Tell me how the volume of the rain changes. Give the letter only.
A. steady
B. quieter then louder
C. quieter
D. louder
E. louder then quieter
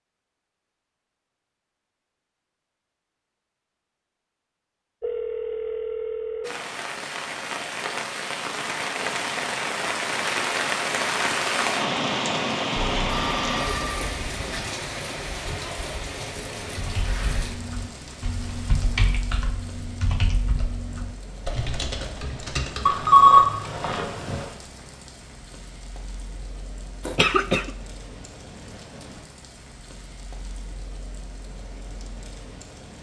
C.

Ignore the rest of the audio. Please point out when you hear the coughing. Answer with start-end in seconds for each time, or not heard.
27.1-27.7.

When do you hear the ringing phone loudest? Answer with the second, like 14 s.
23 s.